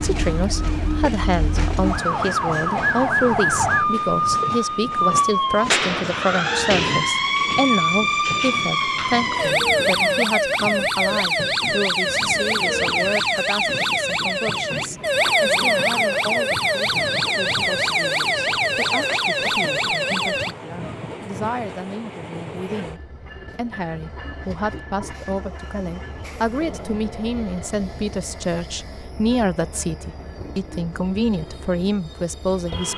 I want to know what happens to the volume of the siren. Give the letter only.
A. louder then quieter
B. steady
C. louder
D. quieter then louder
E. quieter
B.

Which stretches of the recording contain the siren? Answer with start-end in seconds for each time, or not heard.
0.0-20.6.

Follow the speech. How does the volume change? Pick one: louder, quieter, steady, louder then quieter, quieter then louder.
quieter then louder.